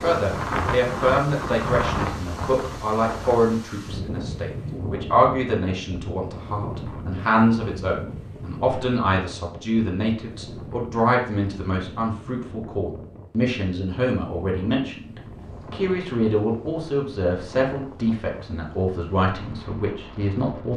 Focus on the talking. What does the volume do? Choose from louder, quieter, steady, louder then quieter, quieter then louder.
steady.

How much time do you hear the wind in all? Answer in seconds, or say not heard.
21 s.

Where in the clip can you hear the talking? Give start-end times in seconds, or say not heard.
0.0-20.7.